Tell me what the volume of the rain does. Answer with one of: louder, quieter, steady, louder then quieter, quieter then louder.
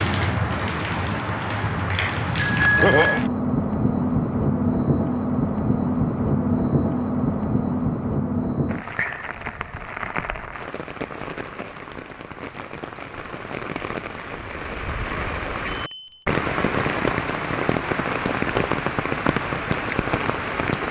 quieter then louder.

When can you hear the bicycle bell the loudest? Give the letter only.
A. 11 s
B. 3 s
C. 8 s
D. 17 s
B.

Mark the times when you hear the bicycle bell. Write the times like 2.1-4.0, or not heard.
2.4-3.2, 15.7-16.2.